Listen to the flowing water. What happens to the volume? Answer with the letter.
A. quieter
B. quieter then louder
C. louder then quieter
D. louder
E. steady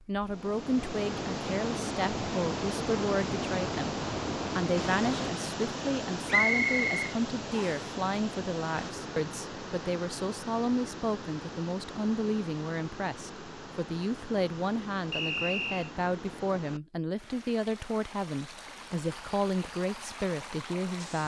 A.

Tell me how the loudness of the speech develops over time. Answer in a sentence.
The loudness of the speech stays about the same.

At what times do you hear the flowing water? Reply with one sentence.
The flowing water can be heard from 0.0 to 21.2 s.